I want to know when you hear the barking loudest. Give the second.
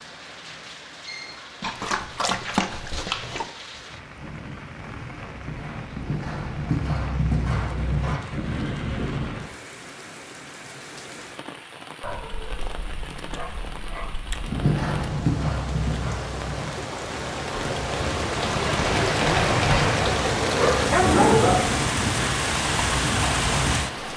21 s.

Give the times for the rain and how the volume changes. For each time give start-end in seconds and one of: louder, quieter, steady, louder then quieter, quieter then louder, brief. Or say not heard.
0.0-24.1 louder.